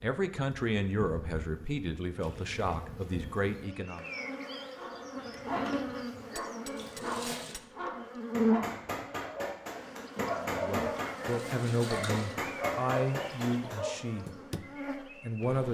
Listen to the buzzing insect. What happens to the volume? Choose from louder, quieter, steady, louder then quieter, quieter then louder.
louder then quieter.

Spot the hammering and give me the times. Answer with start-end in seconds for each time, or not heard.
5.2-14.7.